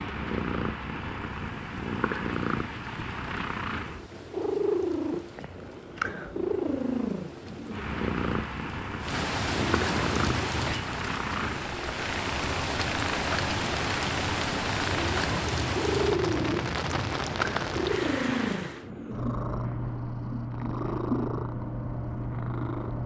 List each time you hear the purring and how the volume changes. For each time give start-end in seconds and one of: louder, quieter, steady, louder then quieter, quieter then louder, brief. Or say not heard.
0.0-23.0 steady.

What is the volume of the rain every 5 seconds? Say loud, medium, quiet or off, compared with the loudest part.
quiet, medium, loud, loud, off.